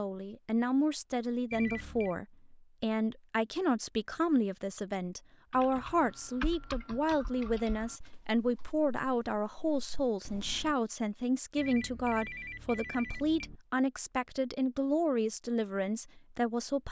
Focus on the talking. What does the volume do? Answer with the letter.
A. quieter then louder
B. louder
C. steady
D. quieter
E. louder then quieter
C.